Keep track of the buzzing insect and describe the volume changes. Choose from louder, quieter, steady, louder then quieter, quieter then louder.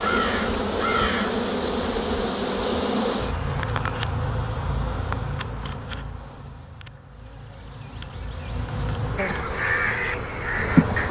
quieter then louder.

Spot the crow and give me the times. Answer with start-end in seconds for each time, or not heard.
0.0-1.4, 9.2-11.0.